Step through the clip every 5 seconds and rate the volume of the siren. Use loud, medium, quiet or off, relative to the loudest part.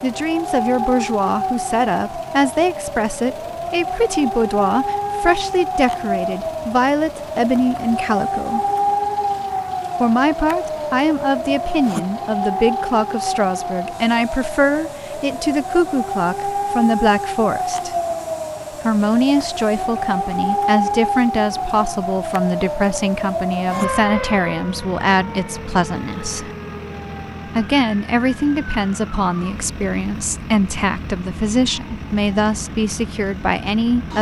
loud, loud, loud, loud, loud, quiet, quiet.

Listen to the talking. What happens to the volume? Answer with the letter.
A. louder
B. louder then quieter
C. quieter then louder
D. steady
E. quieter
D.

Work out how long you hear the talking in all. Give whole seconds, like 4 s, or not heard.
31 s.